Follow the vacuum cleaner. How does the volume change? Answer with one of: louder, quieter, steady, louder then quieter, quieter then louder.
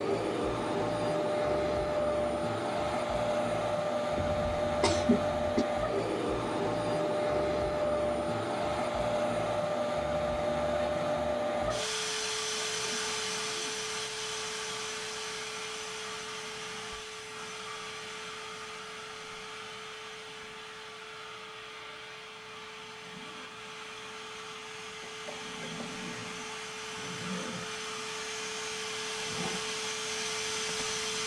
quieter then louder.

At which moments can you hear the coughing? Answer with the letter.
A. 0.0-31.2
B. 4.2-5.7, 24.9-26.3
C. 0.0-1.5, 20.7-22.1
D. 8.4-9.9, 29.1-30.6
B.